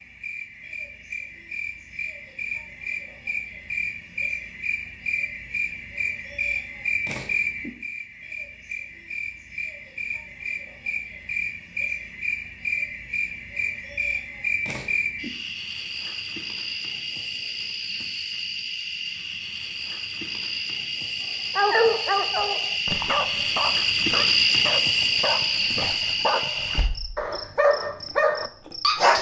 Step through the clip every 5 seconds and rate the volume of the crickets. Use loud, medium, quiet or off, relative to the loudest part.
medium, medium, medium, medium, loud, loud.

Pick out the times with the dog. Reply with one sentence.
You can hear the dog from 21.6 to 29.1 s.